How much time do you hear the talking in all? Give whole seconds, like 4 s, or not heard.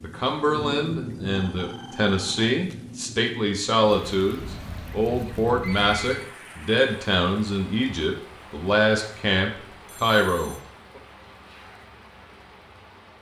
11 s.